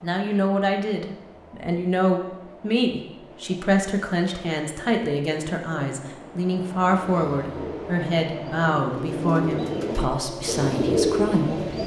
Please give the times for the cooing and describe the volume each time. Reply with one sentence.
The cooing can be heard from 6.9 to 11.8 s, getting louder.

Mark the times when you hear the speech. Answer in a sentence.
The speech can be heard from 0.0 to 11.7 s.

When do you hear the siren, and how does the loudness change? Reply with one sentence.
You can't hear the siren here.